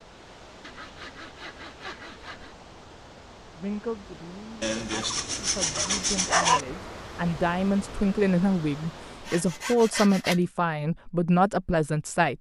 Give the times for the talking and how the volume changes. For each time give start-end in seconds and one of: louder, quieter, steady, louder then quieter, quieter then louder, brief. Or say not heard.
3.5-12.3 louder.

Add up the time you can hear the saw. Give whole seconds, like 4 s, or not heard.
5 s.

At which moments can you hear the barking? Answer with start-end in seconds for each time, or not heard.
5.0-6.6.